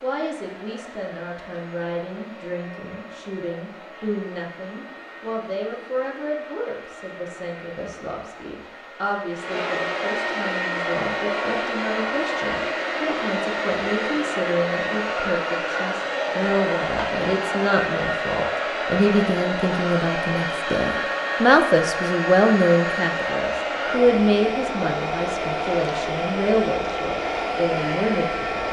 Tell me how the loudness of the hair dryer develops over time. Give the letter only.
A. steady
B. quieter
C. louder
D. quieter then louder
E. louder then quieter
C.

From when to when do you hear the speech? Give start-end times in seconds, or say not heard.
0.0-28.6.